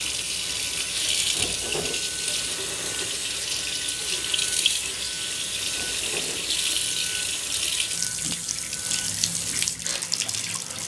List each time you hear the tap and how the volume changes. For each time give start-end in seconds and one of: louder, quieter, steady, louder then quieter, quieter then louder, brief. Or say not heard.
0.0-10.8 steady.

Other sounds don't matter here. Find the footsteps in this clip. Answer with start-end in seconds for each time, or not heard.
not heard.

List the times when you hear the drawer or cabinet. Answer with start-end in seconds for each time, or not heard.
1.4-2.0, 5.7-6.6.